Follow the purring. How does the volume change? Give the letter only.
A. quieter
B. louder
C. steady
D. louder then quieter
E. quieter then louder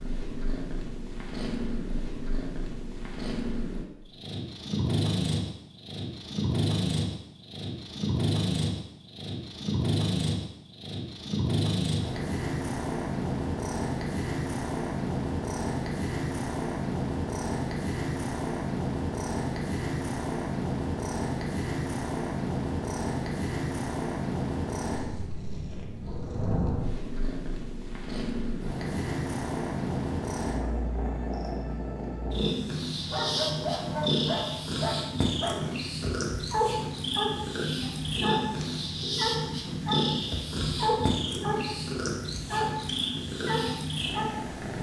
C.